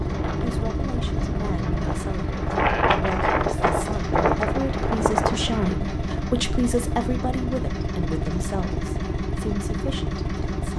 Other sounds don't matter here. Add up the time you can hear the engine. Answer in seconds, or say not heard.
11 s.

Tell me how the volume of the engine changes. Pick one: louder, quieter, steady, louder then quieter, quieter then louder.
steady.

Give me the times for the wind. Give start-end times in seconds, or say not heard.
0.0-5.8.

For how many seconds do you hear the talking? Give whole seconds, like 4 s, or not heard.
10 s.